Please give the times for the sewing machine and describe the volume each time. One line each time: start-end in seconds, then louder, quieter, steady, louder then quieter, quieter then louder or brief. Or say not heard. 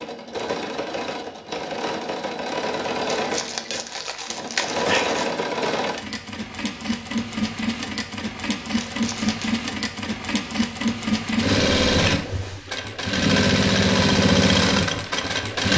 0.0-15.7 louder.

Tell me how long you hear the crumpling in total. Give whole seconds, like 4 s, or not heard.
3 s.